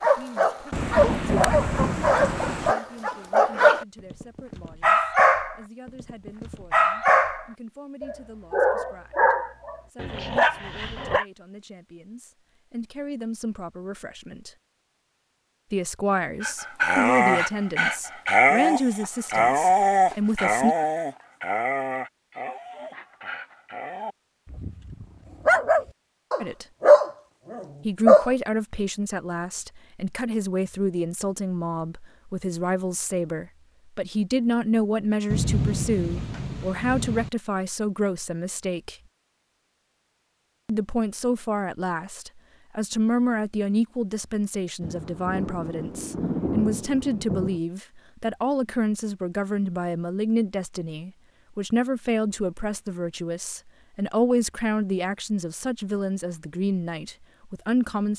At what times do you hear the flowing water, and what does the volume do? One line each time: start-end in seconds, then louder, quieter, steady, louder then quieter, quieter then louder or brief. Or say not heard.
not heard.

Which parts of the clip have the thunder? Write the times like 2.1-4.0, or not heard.
0.7-2.8, 35.3-37.3, 44.8-47.6.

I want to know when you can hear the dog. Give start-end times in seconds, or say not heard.
0.0-11.2, 16.4-28.3.